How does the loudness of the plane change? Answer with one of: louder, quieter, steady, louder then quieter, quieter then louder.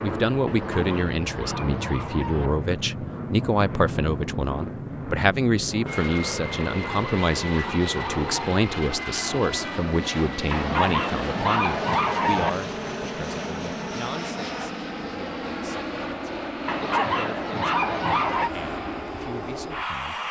steady.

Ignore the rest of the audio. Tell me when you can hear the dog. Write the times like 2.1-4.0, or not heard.
0.5-2.5, 6.7-8.6, 10.5-12.5, 16.6-18.5.